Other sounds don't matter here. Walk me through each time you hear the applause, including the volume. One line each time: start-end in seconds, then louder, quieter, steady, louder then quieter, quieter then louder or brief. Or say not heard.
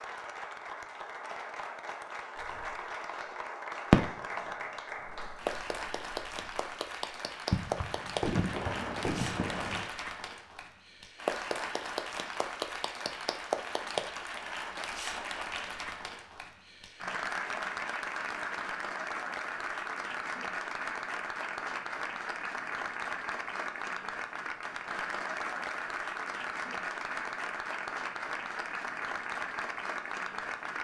0.0-30.7 steady.